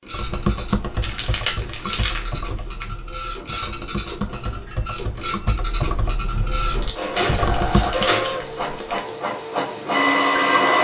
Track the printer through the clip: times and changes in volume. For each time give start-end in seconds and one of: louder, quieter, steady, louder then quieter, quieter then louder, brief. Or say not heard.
0.0-10.8 louder.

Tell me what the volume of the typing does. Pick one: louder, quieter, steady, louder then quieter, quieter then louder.
quieter then louder.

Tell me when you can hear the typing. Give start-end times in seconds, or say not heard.
0.1-8.1.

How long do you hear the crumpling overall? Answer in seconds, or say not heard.
4 s.